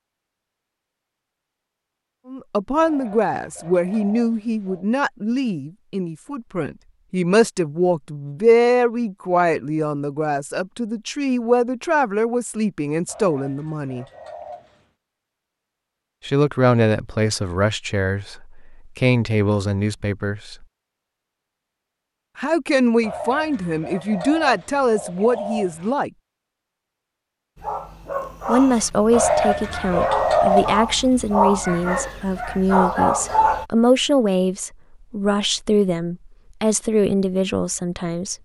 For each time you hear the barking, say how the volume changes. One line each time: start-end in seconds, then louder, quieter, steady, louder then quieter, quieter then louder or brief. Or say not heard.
27.6-33.6 louder.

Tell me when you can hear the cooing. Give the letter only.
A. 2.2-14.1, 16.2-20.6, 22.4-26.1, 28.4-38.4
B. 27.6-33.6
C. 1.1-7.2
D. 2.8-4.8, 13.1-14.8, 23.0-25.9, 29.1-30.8
D.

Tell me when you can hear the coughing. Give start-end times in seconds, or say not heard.
not heard.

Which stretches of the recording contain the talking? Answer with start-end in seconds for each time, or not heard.
2.2-14.1, 16.2-20.6, 22.4-26.1, 28.4-38.4.